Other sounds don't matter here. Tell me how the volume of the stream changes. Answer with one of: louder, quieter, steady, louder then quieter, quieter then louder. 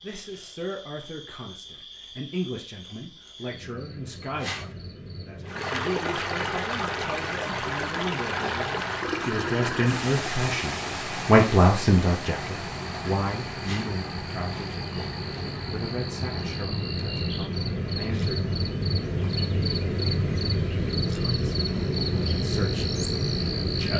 quieter.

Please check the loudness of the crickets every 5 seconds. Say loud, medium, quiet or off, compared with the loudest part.
quiet, quiet, medium, loud, loud.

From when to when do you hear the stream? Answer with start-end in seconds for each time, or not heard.
5.5-23.8.